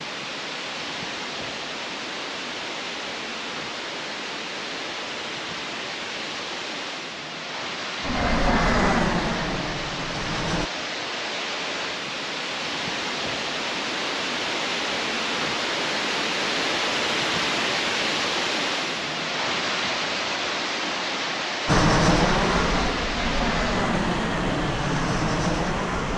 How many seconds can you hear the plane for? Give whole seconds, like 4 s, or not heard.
7 s.